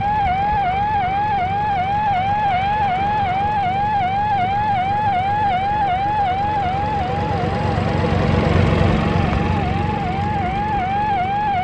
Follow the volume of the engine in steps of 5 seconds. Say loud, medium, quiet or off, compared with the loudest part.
medium, loud, medium.